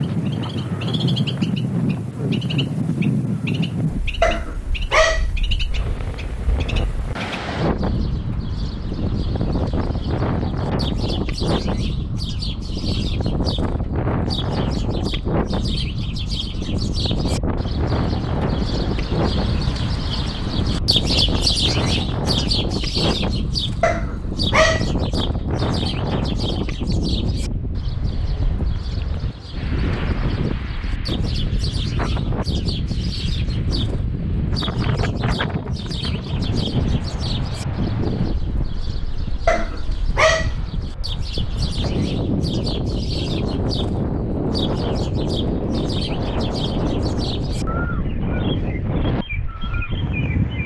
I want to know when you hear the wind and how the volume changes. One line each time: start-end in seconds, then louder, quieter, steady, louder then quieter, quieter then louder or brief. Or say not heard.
0.0-50.6 steady.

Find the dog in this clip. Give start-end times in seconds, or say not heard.
4.2-5.2, 23.8-24.9, 39.5-40.5.